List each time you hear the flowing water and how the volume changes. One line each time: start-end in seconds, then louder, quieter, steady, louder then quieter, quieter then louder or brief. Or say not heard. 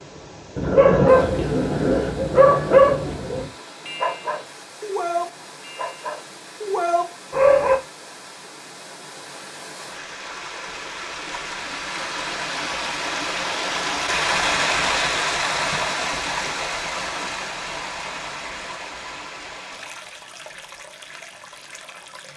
0.0-22.3 louder then quieter.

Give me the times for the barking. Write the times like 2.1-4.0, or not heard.
0.6-7.8.